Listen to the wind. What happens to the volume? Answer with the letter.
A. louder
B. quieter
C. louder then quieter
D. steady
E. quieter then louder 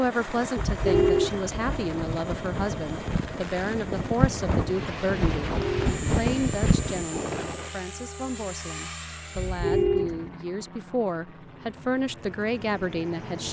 A.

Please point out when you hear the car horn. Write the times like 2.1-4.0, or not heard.
0.6-2.2, 5.5-6.0, 9.3-10.3.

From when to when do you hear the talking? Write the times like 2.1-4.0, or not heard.
0.0-13.4.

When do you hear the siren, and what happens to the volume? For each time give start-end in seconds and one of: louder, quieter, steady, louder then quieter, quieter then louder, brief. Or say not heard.
not heard.